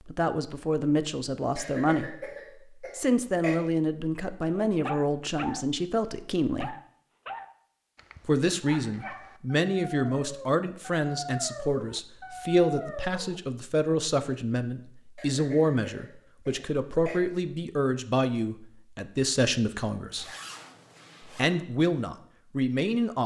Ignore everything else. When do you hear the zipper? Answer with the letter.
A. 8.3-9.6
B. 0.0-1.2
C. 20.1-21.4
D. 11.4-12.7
C.